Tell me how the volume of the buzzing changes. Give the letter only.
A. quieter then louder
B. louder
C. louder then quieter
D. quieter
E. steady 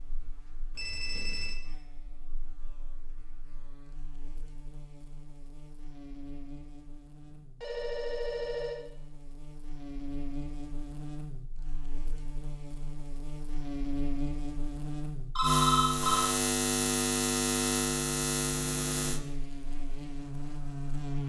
B.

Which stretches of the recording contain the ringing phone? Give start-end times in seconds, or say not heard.
0.7-1.6, 7.2-8.8, 15.3-16.3.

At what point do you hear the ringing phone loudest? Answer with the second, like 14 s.
16 s.